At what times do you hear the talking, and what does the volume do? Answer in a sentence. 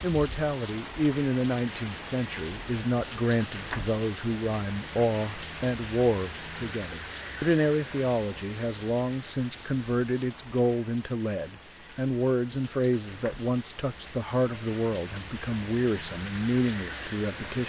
You can hear the talking from 0.0 to 17.6 s, at a steady volume.